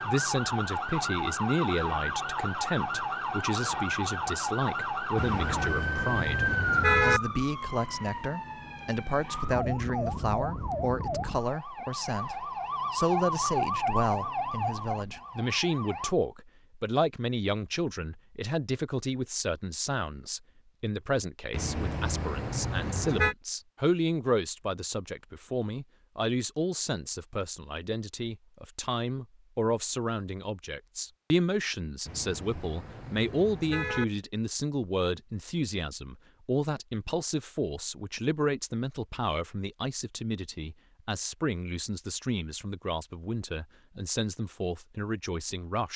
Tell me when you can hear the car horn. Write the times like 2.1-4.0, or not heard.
5.2-7.2, 21.5-23.4, 32.0-34.0.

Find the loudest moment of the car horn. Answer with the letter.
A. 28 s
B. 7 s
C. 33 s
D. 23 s
B.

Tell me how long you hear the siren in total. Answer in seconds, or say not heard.
16 s.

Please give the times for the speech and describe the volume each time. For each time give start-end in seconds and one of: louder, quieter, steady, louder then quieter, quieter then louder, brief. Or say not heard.
0.0-45.9 steady.